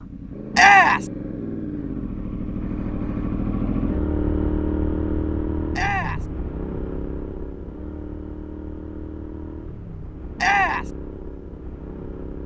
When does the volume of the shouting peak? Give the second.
1 s.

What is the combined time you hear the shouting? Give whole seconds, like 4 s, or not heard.
2 s.